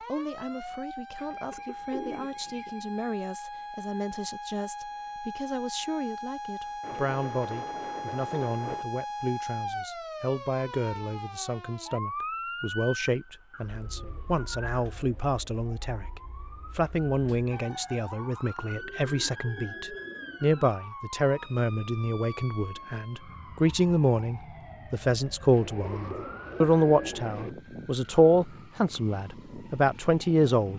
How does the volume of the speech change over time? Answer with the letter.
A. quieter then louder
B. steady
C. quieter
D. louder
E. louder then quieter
D.